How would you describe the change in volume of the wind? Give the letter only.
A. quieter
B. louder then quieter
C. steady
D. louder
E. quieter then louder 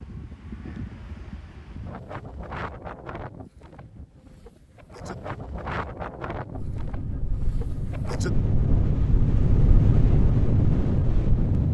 D.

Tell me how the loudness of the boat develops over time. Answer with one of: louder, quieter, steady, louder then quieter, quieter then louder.
louder.